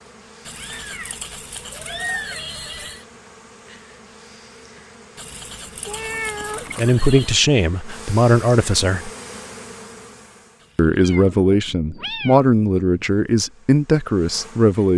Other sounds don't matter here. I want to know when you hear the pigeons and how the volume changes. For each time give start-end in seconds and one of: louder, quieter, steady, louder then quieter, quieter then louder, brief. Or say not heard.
not heard.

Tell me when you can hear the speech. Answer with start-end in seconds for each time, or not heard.
6.8-9.1, 10.8-14.9.